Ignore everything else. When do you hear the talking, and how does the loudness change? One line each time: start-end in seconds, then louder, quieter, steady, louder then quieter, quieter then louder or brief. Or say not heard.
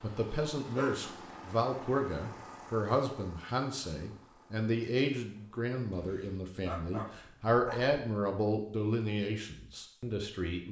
0.0-10.6 steady.